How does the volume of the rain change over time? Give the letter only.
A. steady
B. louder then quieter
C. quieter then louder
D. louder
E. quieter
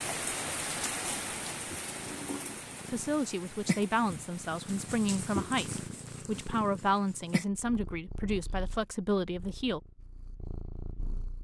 E.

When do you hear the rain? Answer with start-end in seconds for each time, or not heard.
0.0-5.9.